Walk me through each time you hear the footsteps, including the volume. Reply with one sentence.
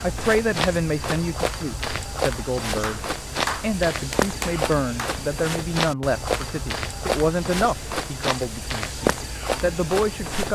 You can hear the footsteps from 0.0 to 10.4 s, at a steady volume.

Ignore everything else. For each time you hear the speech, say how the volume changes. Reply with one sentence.
You can hear the speech from 0.0 to 10.4 s, at a steady volume.